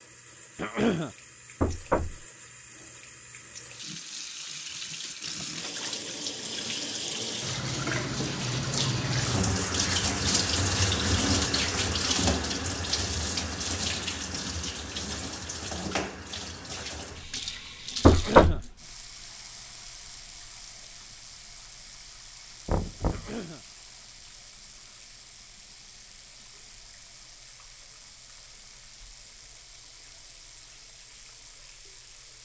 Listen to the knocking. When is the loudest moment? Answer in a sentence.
The loudest moment of the knocking is at 18 seconds.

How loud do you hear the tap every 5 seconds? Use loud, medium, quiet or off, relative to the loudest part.
quiet, loud, loud, medium, quiet, quiet, quiet.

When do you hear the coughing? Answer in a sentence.
You can hear the coughing from 0.6 to 1.1 s, from 18.1 to 18.6 s and from 23.1 to 23.6 s.